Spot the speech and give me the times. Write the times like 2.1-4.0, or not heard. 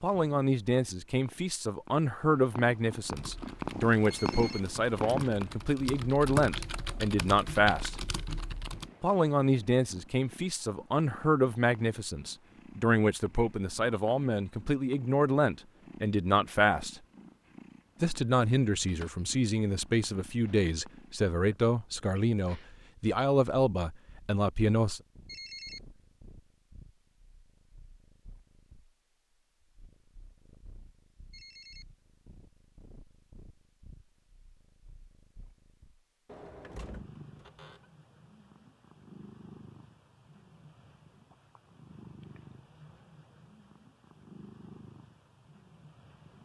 0.0-8.0, 9.0-17.0, 18.0-25.0.